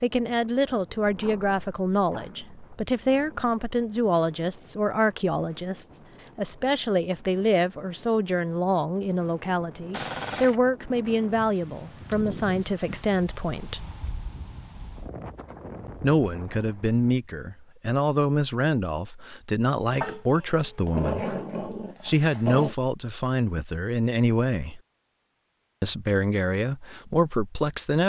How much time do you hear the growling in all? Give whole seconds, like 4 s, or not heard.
6 s.